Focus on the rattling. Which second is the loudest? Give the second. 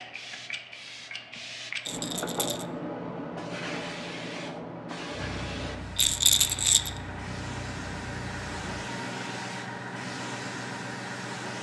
6 s.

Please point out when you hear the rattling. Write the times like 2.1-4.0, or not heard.
1.9-2.6, 6.0-6.9.